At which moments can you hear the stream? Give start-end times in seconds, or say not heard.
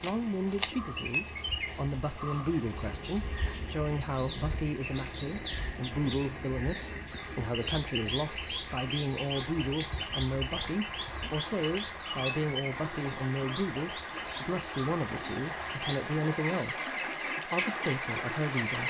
0.0-18.8.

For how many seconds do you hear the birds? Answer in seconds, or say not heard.
19 s.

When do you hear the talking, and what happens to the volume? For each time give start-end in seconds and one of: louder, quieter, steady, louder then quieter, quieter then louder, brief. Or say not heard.
0.0-16.9 steady
17.4-18.8 brief.